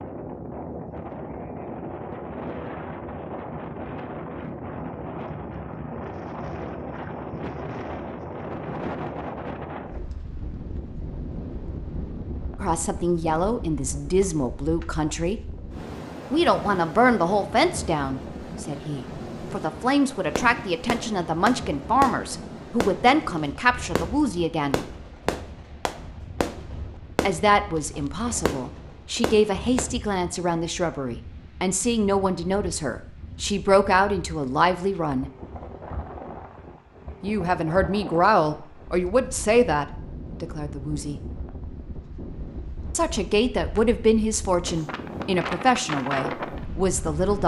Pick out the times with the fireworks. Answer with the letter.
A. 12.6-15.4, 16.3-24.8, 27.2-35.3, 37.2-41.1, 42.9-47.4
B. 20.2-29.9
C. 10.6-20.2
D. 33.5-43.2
B.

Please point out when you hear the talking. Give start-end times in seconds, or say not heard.
12.6-15.4, 16.3-24.8, 27.2-35.3, 37.2-41.1, 42.9-47.4.